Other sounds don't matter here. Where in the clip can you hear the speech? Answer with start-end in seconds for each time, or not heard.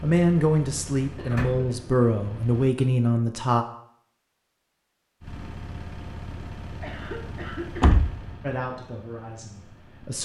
0.0-3.6, 8.4-10.2.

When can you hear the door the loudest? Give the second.
8 s.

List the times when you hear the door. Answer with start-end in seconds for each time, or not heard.
1.3-1.8, 7.8-8.3.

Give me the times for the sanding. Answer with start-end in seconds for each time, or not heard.
not heard.